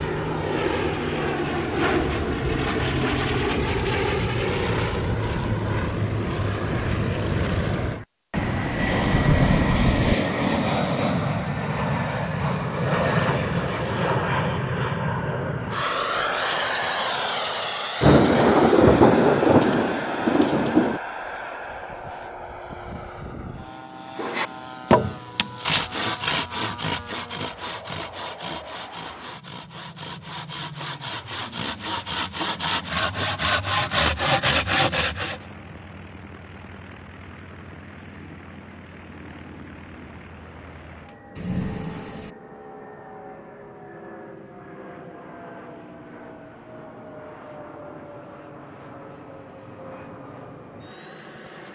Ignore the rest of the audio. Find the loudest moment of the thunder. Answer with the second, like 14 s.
19 s.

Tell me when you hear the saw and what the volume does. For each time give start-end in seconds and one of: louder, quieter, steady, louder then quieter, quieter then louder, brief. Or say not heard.
24.1-35.4 quieter then louder.